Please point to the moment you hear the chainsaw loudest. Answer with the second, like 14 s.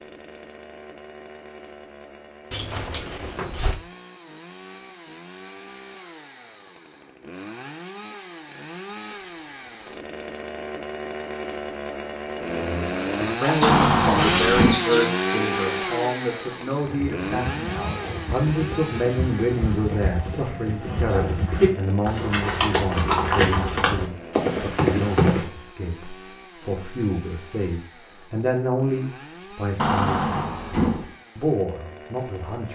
15 s.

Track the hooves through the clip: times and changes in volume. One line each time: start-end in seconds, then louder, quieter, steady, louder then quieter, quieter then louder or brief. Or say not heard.
16.8-25.4 louder.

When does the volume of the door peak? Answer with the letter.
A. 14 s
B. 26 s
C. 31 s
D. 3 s
A.